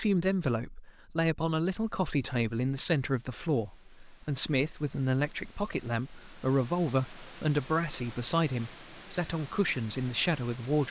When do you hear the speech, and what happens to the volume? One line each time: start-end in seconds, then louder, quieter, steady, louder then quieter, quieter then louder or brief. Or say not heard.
0.0-10.8 steady.